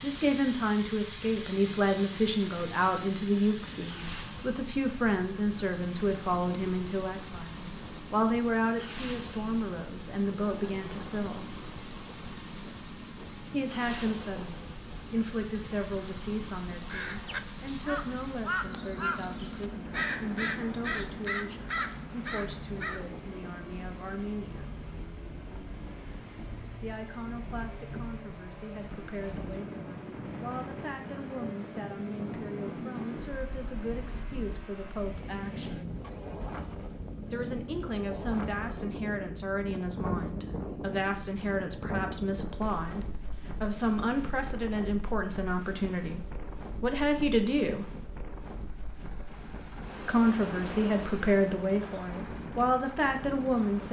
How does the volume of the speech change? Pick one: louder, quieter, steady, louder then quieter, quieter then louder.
quieter then louder.